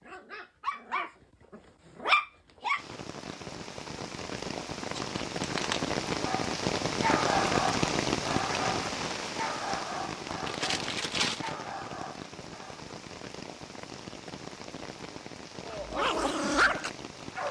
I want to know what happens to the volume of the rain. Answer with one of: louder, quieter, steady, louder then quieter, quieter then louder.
louder then quieter.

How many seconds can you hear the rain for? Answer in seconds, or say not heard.
15 s.